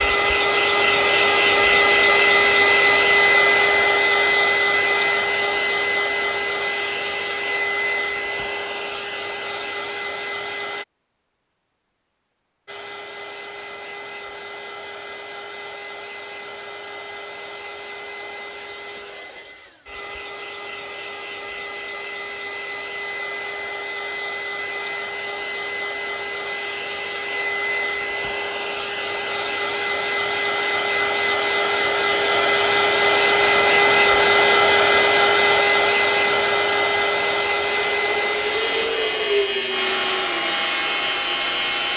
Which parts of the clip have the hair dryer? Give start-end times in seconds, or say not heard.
0.0-10.8, 12.7-41.9.